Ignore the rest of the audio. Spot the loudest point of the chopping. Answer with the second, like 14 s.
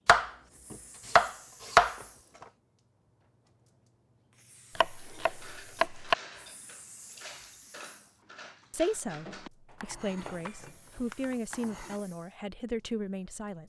2 s.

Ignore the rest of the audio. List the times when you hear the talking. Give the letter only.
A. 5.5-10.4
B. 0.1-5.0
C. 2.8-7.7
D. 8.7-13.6
D.